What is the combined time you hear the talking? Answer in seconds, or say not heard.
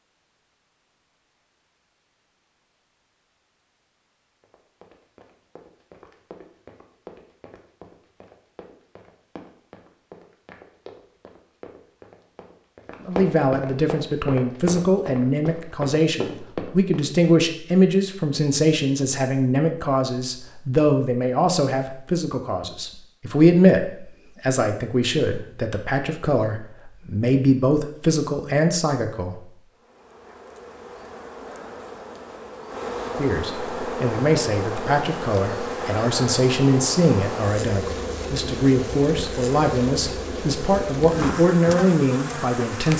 26 s.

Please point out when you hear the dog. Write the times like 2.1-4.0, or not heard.
not heard.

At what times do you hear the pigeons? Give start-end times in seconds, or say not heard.
not heard.